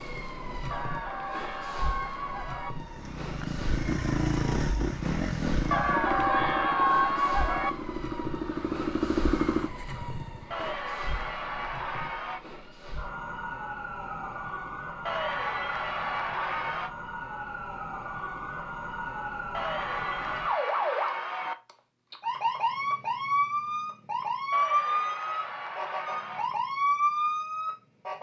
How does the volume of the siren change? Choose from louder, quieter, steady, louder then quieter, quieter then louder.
louder.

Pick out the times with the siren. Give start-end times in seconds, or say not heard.
0.0-28.1.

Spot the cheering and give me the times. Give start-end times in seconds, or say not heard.
0.7-2.7, 5.7-7.7, 10.5-12.4, 15.1-16.9, 19.5-21.6, 24.5-26.5.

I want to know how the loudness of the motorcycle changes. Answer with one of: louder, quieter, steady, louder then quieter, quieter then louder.
quieter then louder.